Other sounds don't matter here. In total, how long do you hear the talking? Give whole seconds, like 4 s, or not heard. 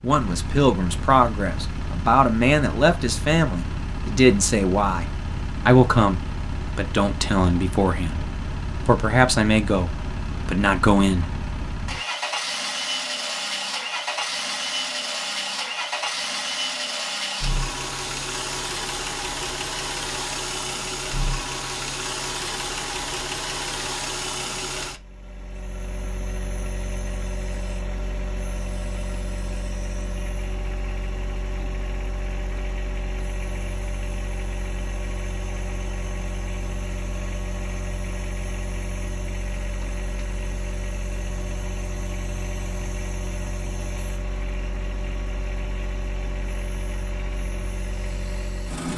11 s.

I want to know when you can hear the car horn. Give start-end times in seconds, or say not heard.
not heard.